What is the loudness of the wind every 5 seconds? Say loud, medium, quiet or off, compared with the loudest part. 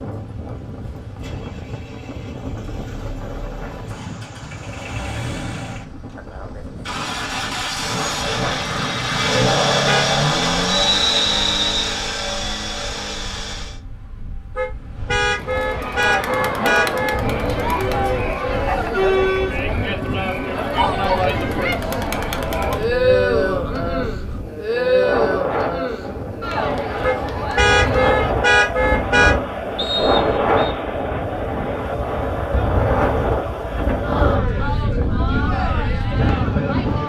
quiet, quiet, quiet, medium, medium, loud, loud, loud.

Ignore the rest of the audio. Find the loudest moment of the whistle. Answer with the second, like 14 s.
11 s.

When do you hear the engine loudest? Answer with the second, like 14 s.
10 s.